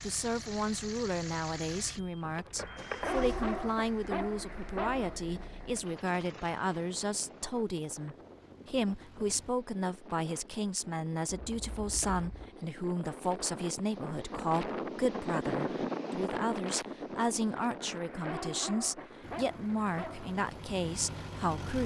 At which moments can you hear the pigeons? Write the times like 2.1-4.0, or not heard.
not heard.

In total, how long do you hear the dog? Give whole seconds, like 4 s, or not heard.
5 s.